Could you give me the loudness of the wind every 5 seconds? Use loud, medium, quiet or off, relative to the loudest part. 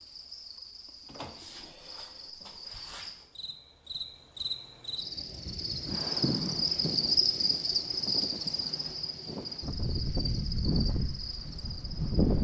off, medium, loud.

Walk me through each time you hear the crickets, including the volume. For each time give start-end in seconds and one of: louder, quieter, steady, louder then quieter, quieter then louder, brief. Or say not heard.
0.0-12.3 louder then quieter.